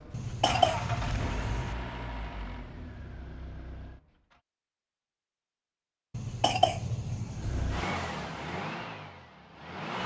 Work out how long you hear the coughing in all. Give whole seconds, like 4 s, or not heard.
3 s.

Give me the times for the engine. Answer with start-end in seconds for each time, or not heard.
0.0-4.4, 7.3-10.0.